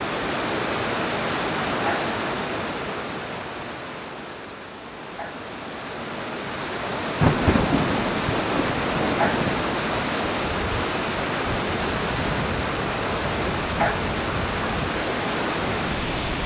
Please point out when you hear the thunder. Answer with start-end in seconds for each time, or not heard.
7.0-9.7.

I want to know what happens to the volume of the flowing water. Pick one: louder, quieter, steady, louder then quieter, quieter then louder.
quieter then louder.